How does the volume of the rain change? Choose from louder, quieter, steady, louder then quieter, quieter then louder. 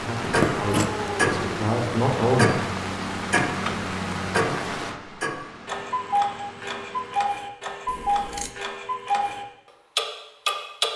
quieter.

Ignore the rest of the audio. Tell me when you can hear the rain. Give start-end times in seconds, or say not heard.
0.0-7.2.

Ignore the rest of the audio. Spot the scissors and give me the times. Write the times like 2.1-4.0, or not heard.
0.2-0.9, 7.8-8.6.